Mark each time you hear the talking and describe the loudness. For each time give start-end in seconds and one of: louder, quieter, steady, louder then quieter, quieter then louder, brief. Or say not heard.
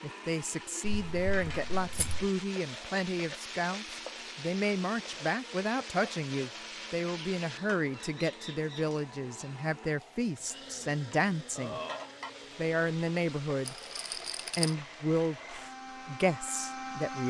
0.0-11.8 steady
12.6-13.8 brief
14.6-17.2 brief.